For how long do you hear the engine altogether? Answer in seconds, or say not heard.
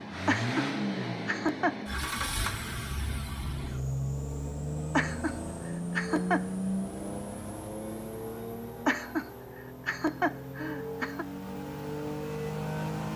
13 s.